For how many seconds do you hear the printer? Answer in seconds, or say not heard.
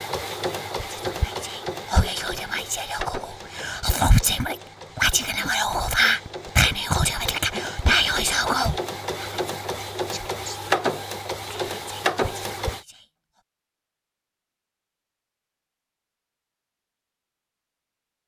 13 s.